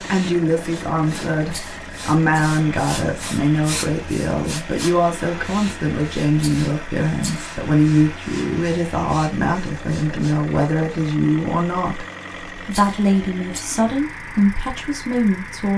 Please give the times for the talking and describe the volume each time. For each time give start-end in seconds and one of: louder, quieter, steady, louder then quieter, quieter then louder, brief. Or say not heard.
0.1-15.7 steady.